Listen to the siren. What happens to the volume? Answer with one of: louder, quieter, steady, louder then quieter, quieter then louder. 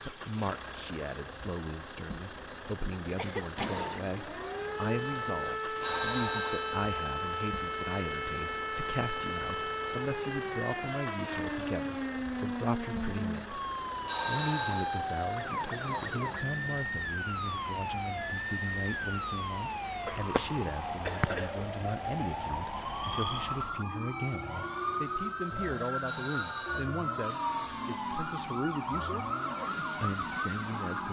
steady.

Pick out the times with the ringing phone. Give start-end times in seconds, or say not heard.
5.8-6.8, 14.1-15.1, 26.1-26.9.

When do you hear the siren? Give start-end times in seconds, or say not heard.
3.5-31.0.